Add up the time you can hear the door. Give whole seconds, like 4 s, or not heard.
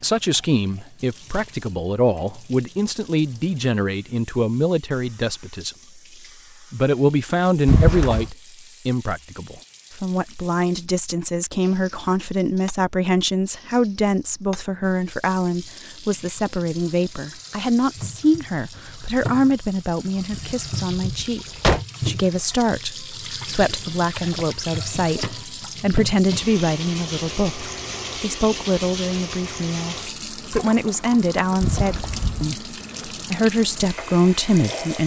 3 s.